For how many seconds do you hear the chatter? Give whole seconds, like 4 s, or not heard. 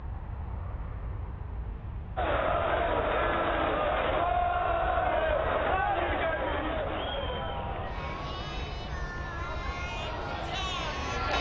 9 s.